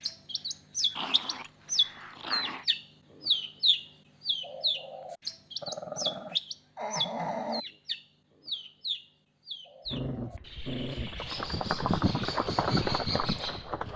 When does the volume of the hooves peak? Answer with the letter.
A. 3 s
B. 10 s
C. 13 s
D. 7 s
C.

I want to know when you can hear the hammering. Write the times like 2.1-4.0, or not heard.
not heard.